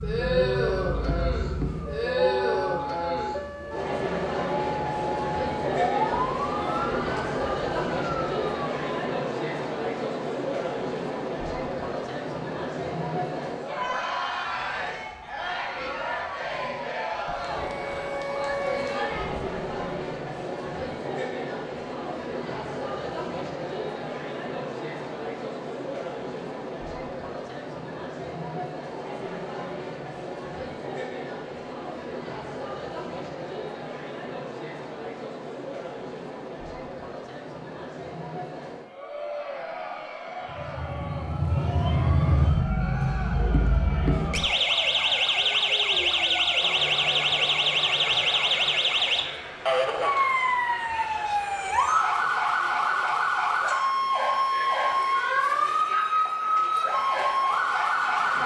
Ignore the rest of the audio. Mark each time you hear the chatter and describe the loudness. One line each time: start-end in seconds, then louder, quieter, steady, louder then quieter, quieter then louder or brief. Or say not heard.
0.0-58.4 quieter.